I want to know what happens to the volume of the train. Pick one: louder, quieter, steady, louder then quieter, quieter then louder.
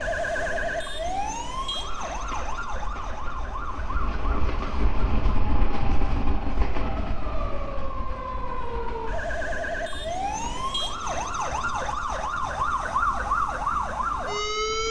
louder then quieter.